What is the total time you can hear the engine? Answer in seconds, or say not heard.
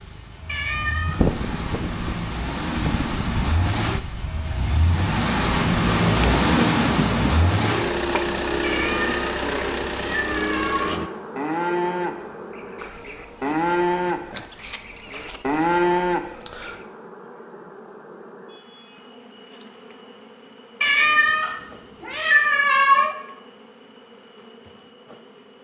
11 s.